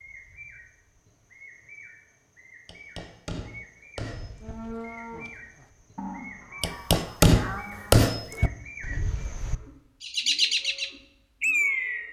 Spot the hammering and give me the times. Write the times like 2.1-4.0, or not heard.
2.6-4.5, 6.6-8.5.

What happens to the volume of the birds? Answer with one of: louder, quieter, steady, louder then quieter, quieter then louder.
louder.